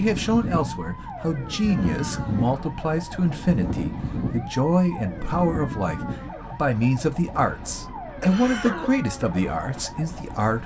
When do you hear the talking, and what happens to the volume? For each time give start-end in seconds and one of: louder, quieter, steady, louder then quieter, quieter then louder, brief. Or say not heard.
0.0-10.6 steady.